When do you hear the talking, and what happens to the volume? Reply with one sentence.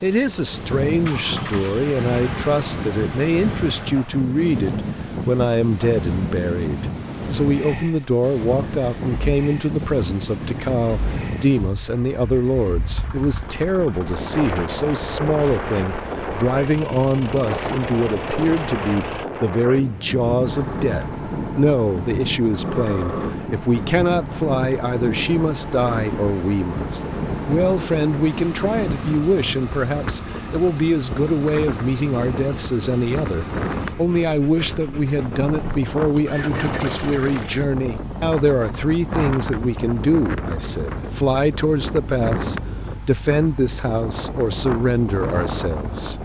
The talking can be heard from 0.0 to 46.1 s, at a steady volume.